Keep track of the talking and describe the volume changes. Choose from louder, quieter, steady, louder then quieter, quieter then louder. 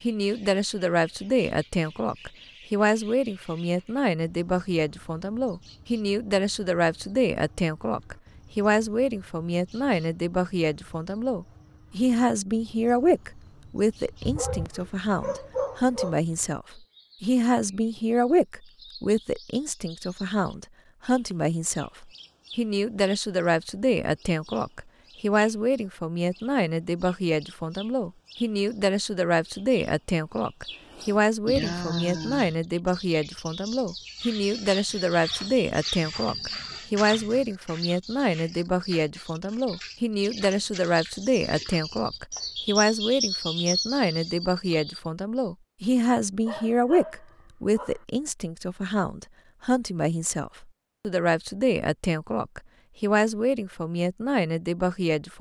steady.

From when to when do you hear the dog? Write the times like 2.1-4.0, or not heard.
14.2-16.2, 46.5-48.0.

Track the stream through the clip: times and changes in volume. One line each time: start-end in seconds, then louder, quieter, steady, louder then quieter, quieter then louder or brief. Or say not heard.
not heard.